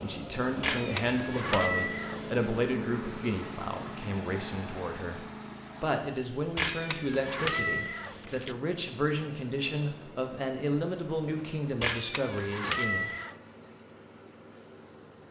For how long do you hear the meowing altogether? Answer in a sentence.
You can hear the meowing for 5 seconds altogether.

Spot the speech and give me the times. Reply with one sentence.
The speech can be heard from 0.0 to 13.1 s.